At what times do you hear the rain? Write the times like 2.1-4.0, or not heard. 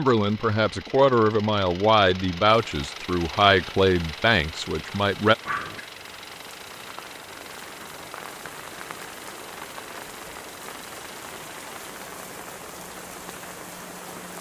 2.7-14.3.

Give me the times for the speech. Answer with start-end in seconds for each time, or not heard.
0.0-5.3.